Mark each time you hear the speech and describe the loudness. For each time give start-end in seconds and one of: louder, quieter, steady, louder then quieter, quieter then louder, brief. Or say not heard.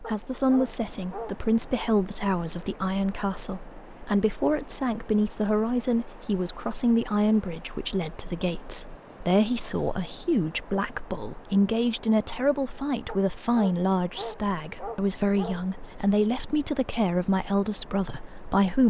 0.0-18.8 steady.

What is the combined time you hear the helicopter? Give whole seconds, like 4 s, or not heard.
not heard.